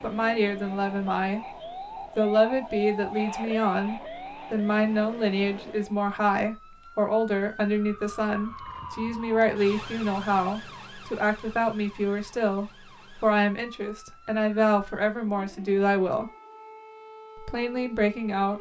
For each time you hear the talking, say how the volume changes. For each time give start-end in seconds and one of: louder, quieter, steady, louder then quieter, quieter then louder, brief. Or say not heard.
0.0-1.4 brief
2.1-16.3 steady
17.4-18.5 brief.